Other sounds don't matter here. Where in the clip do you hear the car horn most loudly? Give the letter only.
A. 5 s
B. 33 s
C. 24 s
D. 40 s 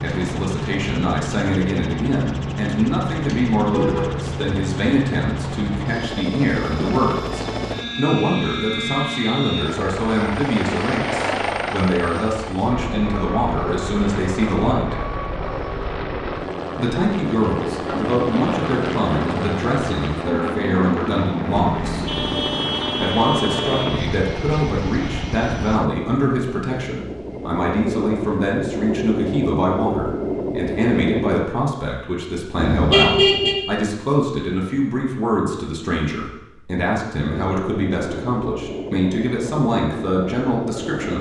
B.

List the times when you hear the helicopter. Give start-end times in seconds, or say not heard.
0.0-31.5, 37.2-41.1.